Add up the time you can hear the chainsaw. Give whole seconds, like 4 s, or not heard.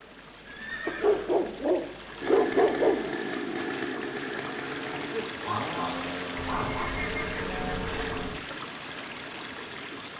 6 s.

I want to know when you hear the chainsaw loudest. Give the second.
3 s.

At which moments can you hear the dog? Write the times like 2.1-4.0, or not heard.
0.8-3.1, 5.5-7.0.